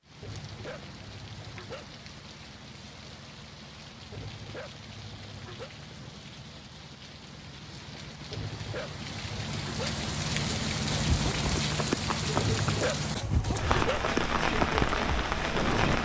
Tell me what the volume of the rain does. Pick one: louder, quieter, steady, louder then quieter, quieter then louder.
louder.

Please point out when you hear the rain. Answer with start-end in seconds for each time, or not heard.
0.0-16.0.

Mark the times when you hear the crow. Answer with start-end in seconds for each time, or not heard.
not heard.